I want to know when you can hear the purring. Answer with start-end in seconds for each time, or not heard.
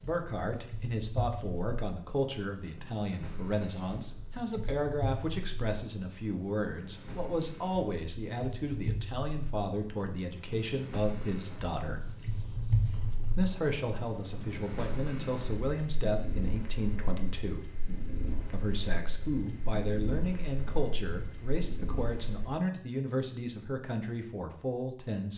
0.0-22.5.